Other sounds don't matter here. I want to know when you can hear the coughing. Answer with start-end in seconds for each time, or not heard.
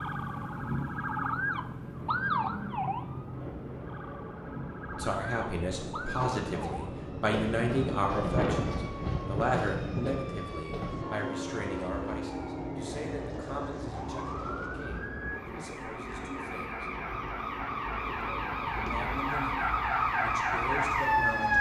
not heard.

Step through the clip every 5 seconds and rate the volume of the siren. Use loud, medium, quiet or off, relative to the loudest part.
medium, quiet, quiet, medium, loud.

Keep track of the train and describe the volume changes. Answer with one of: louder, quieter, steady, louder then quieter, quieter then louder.
louder then quieter.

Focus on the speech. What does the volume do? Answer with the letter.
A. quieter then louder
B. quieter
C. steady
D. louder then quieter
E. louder
A.